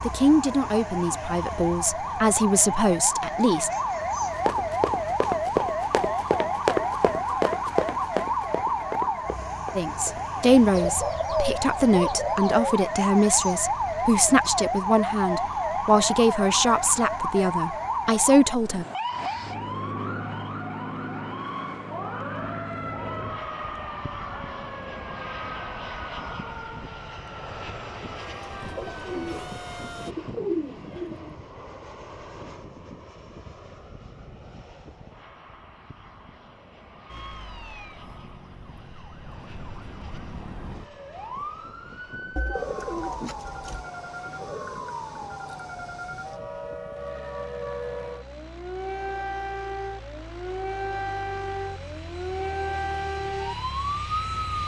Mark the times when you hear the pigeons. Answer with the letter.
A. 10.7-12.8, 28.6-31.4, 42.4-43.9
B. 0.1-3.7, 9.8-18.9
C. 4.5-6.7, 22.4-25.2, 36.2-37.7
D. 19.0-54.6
A.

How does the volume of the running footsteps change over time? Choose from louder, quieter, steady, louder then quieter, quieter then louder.
quieter.